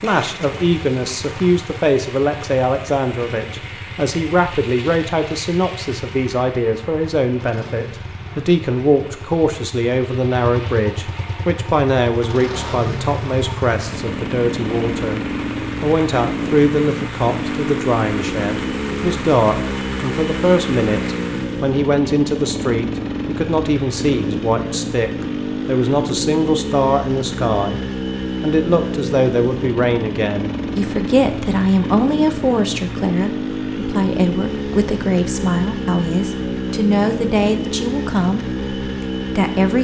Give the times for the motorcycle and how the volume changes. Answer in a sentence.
You can hear the motorcycle from 0.0 to 39.7 s, getting louder.